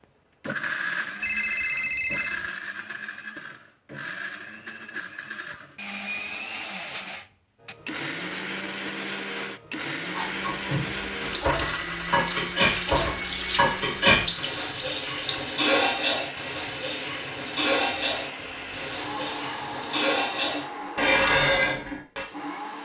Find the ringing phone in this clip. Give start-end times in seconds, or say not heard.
1.2-2.4.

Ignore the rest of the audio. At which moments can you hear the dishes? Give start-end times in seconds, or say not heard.
10.1-22.2.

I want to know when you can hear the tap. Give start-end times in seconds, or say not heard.
11.1-15.5.